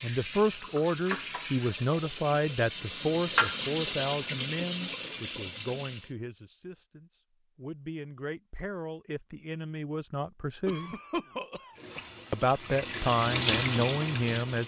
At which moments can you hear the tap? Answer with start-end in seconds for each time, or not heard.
0.0-6.2, 11.8-14.6.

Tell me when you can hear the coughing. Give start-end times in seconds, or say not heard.
10.7-12.2.